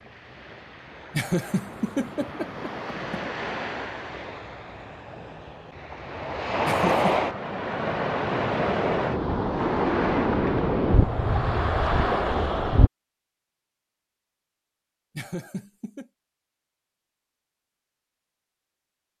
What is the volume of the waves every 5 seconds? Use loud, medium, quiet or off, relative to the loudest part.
quiet, loud, loud, off.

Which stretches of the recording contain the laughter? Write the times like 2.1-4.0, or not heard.
1.1-3.2, 6.7-7.2, 15.2-16.1.